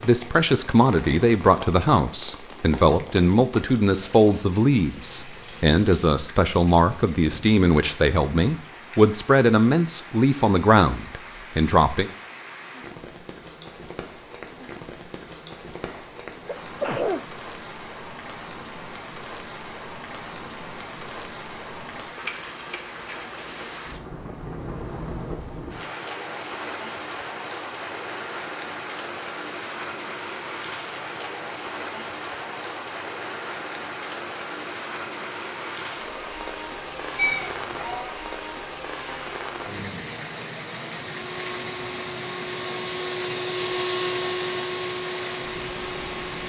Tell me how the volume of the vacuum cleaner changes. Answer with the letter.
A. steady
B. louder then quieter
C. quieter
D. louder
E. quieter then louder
B.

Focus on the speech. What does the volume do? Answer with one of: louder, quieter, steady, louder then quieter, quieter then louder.
steady.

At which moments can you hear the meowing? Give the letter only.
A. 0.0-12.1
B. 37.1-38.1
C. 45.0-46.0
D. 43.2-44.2
B.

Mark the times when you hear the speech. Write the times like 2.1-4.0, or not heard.
0.0-12.1.